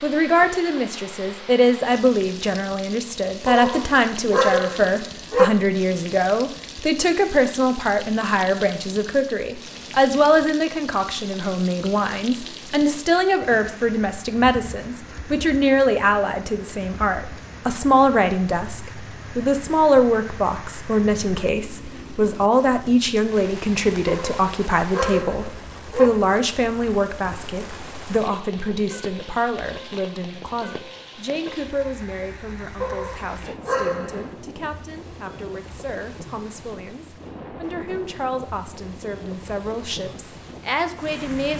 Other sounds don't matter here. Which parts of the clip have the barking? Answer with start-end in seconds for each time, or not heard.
3.5-5.5, 24.1-26.1, 32.8-34.3.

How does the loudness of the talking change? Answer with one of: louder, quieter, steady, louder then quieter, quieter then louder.
quieter.